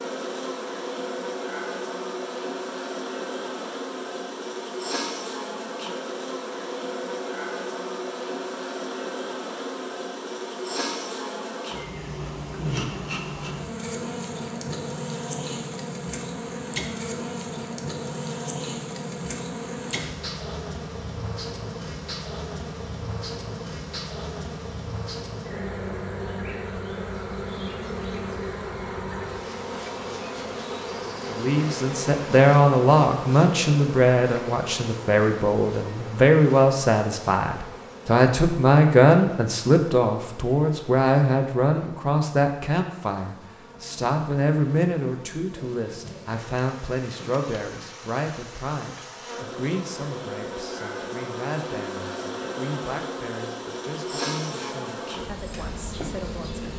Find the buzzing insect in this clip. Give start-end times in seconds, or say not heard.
0.0-56.7.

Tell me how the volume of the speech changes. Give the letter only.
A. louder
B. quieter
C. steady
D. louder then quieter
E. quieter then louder
B.